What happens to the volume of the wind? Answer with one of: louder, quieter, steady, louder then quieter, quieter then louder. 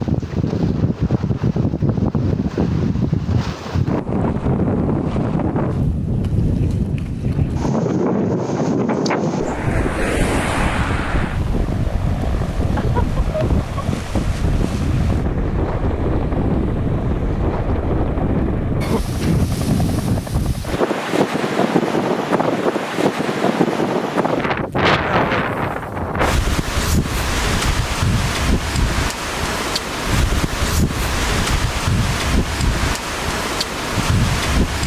steady.